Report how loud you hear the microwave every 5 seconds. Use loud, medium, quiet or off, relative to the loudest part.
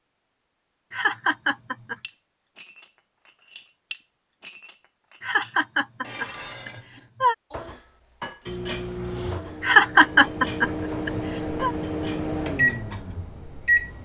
off, medium, loud.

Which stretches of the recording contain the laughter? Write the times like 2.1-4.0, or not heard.
0.9-1.9, 5.2-7.3, 9.6-11.7.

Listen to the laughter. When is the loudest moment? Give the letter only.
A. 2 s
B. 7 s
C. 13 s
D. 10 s
D.